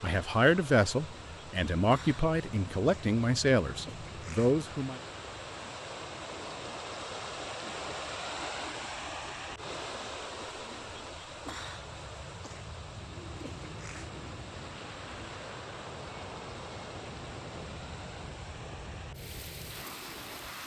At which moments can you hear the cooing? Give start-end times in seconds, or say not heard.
13.0-15.4.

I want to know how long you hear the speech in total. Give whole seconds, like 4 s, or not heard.
5 s.